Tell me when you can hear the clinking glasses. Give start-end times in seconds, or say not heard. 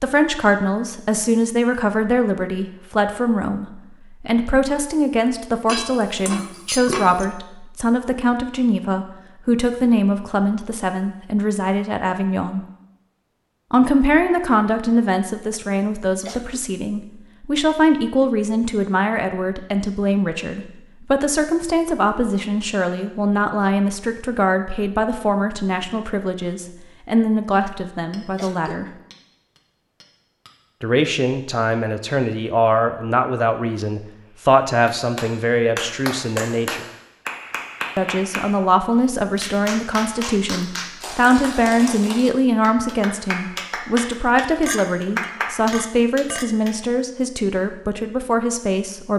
5.7-7.2, 28.1-30.5, 44.6-46.5.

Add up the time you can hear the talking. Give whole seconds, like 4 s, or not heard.
45 s.